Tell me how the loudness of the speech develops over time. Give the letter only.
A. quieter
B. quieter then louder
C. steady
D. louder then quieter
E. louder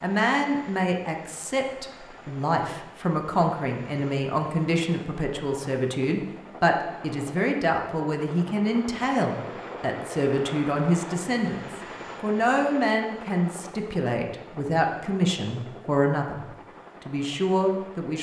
C.